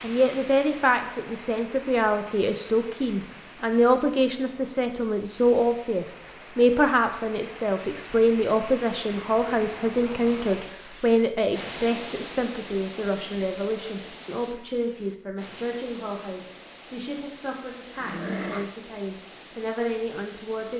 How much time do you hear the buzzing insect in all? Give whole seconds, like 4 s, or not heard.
not heard.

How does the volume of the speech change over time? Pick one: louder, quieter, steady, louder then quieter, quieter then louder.
quieter.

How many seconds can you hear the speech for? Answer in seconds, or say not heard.
21 s.